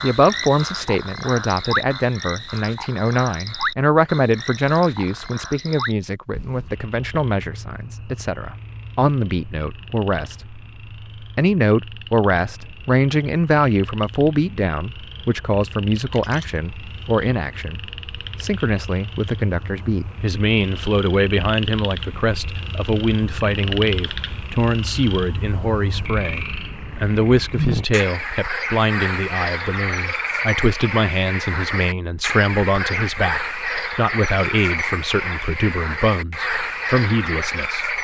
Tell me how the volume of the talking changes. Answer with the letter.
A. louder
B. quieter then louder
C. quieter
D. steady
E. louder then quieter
D.